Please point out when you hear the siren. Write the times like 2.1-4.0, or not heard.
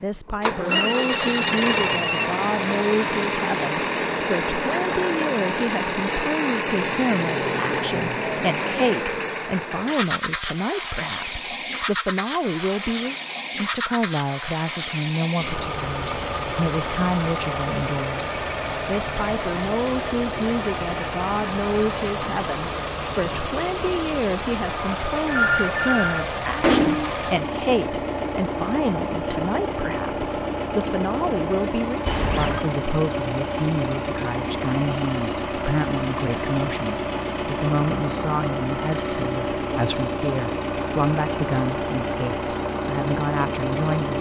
not heard.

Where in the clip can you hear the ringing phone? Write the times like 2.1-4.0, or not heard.
0.2-2.2, 25.2-27.1, 32.0-32.7.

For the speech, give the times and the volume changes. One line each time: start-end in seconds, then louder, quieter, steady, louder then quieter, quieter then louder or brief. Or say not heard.
0.0-44.1 steady.